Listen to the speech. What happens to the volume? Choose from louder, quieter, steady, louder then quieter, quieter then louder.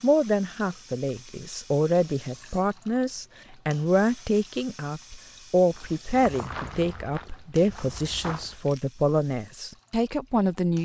steady.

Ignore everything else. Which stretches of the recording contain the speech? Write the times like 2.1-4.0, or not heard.
0.0-10.7.